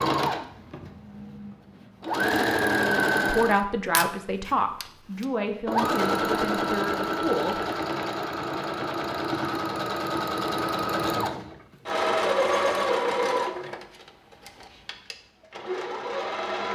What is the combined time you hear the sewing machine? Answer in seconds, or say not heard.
17 s.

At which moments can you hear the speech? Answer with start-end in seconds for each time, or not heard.
3.2-7.7.